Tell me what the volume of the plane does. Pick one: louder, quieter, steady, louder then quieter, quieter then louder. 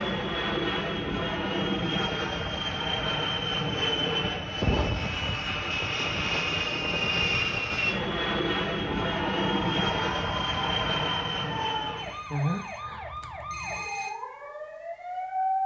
steady.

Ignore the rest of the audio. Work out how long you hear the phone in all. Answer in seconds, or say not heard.
2 s.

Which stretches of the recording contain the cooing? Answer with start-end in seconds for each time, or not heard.
not heard.